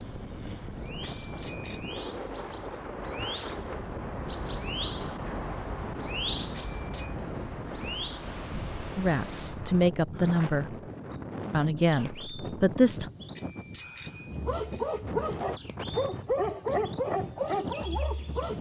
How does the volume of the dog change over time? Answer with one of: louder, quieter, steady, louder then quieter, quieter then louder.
steady.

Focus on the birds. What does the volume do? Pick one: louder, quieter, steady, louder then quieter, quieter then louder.
louder then quieter.